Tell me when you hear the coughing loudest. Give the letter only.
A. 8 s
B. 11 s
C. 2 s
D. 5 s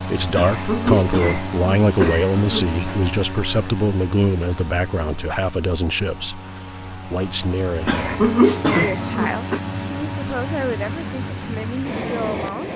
A.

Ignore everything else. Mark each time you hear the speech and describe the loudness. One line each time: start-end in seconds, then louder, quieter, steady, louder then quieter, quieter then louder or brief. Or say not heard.
0.0-12.7 quieter.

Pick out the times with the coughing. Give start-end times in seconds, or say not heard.
0.3-3.0, 7.8-9.6.